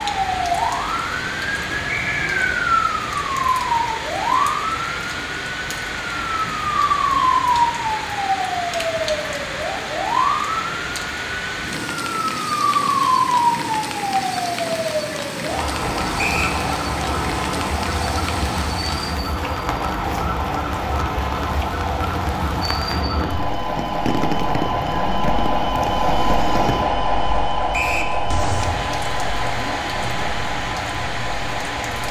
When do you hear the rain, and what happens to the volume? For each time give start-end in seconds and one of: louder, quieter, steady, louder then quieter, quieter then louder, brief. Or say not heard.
0.0-32.0 steady.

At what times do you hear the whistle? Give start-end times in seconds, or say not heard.
1.9-2.5, 16.1-16.6, 27.7-28.1.